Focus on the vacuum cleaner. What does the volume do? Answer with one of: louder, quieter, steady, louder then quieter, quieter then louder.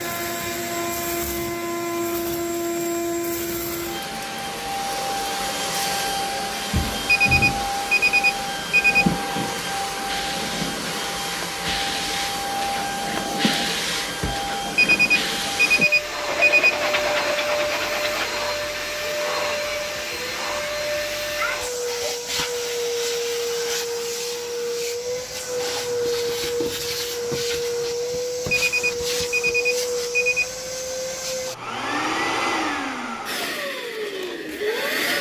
steady.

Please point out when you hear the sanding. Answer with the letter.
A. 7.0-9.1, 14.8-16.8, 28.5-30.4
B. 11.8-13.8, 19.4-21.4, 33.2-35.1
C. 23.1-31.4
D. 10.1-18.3
D.